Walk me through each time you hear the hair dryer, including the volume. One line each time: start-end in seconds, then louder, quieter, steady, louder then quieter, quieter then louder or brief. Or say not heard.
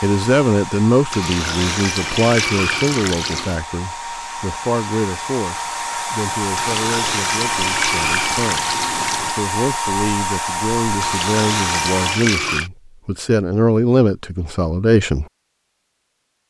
0.0-12.2 louder.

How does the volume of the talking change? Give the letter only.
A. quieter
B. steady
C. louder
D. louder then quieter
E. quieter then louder
E.